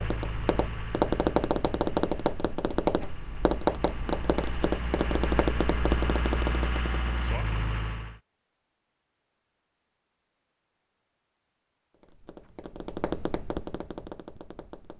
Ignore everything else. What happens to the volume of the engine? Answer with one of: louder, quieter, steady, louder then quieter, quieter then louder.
quieter then louder.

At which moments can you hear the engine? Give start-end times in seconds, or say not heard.
0.0-8.2.